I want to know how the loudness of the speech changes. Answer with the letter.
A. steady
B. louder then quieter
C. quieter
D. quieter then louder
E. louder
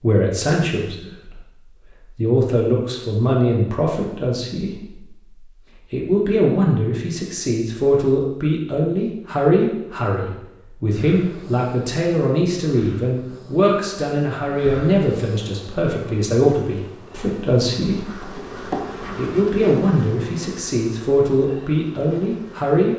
A.